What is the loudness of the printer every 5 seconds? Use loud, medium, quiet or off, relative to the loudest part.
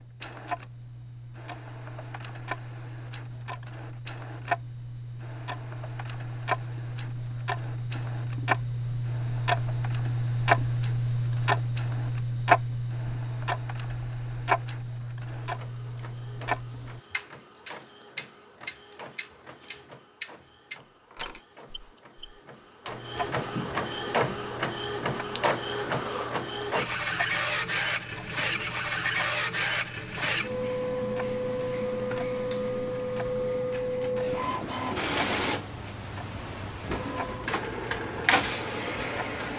quiet, quiet, quiet, quiet, medium, loud, loud, loud.